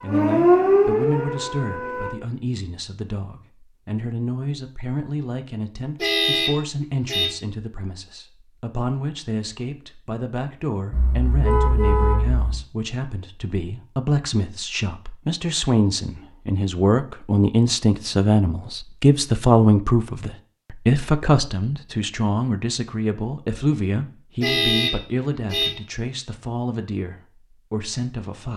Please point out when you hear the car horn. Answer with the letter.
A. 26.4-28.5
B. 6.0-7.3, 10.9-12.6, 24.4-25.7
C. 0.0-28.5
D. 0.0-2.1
B.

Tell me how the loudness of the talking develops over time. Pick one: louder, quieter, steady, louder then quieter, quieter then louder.
louder then quieter.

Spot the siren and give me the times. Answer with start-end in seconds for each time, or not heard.
0.0-2.1.